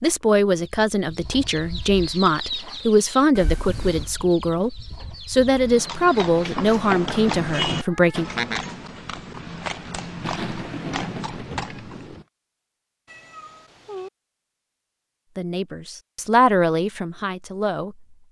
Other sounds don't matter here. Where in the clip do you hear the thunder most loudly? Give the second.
11 s.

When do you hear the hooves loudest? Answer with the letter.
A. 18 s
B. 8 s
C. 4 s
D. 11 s
B.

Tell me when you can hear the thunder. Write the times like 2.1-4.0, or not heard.
10.2-12.2.